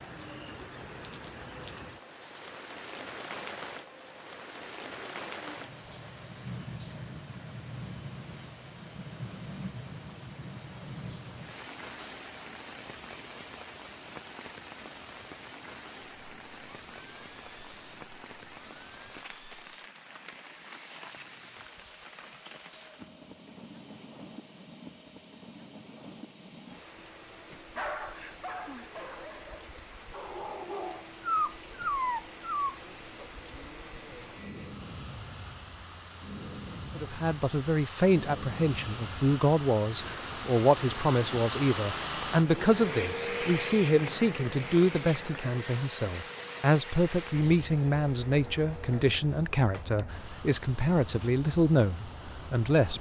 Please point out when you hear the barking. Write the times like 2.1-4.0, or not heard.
27.8-32.8.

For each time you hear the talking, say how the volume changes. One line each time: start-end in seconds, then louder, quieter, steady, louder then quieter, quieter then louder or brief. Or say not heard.
37.0-52.9 steady.